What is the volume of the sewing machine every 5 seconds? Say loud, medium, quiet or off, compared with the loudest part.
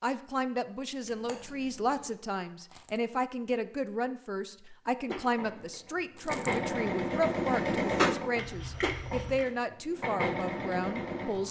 off, loud, loud.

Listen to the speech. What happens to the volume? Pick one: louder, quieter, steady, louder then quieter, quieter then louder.
steady.